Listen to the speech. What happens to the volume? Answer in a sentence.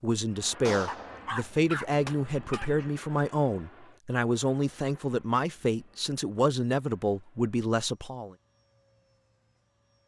The volume of the speech stays about the same.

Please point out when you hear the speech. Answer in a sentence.
You can hear the speech from 0.0 to 8.3 s.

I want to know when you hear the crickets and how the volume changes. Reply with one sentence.
You can't hear the crickets here.